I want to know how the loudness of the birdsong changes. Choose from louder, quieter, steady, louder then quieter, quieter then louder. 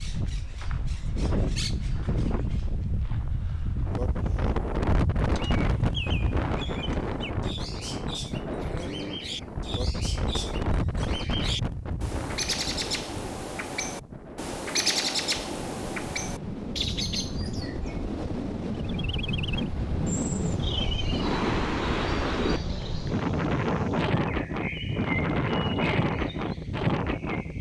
louder then quieter.